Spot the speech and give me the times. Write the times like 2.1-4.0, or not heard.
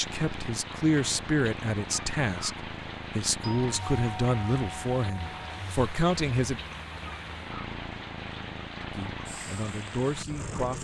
0.0-6.6, 8.9-10.7.